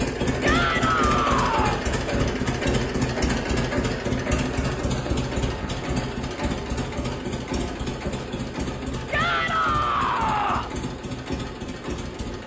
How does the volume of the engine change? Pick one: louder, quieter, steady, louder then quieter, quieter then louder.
quieter.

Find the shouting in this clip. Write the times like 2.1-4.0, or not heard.
0.4-1.8, 9.1-10.8.